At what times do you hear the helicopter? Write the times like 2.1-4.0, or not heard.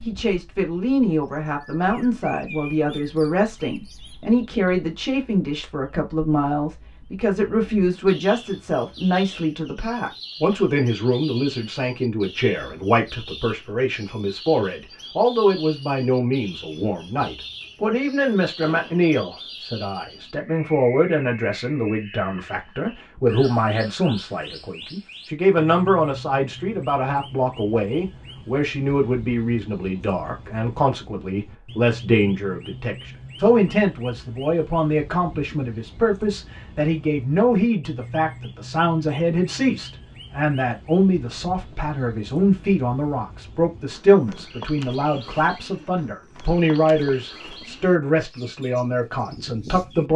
not heard.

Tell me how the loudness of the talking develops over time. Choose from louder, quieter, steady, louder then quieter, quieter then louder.
steady.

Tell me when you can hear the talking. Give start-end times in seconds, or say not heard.
0.1-50.1.